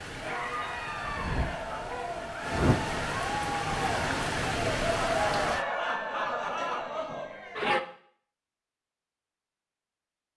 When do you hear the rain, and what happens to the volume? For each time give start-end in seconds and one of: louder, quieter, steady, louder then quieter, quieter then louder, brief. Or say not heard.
0.0-5.7 louder.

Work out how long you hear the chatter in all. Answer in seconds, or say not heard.
8 s.